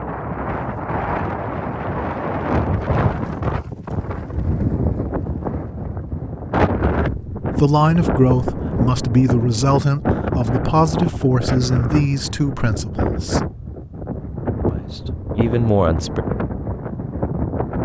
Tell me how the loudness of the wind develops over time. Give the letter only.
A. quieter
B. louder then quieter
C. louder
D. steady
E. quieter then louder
D.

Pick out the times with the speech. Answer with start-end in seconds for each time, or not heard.
7.3-13.4, 14.7-16.2.